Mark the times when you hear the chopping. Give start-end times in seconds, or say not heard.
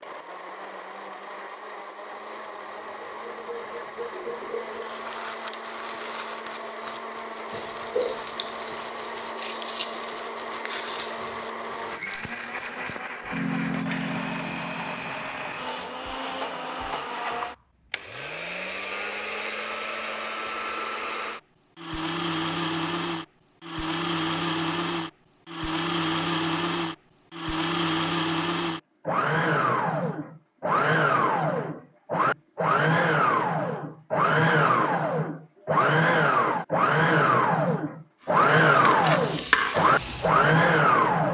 not heard.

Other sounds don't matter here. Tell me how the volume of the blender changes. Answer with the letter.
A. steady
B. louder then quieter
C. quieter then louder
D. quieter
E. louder
E.